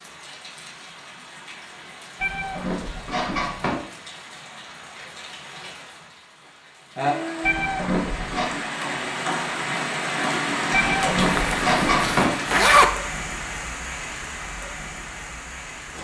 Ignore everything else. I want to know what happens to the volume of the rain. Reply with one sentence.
The volume of the rain goes up, then down.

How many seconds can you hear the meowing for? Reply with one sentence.
The meowing can be heard for 4 seconds in total.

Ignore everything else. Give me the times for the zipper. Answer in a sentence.
You can hear the zipper from 11.2 to 12.9 s.